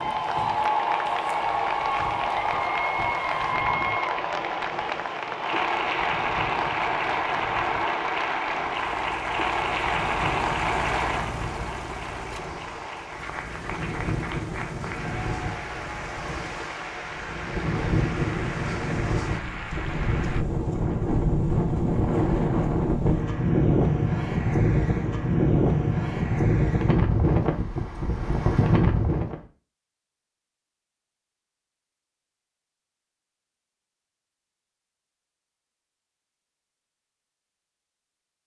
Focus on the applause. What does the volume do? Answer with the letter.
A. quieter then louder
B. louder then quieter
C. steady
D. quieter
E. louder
D.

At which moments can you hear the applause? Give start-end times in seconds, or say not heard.
0.0-20.4.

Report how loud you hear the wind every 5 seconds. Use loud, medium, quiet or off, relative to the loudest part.
quiet, quiet, quiet, medium, loud, loud, off, off.